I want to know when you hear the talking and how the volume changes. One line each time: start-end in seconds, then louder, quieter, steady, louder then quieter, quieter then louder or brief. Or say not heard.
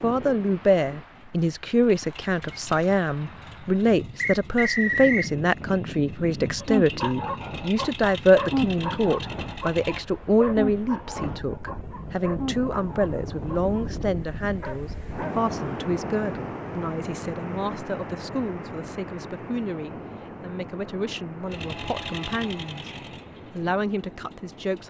0.0-22.9 quieter
23.5-24.8 brief.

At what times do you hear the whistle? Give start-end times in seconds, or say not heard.
4.2-5.3.